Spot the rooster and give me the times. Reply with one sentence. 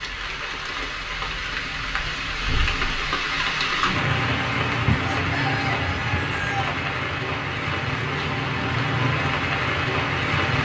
The rooster can be heard from 5.0 to 6.8 s.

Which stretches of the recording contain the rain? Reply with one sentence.
You can hear the rain from 0.0 to 10.6 s.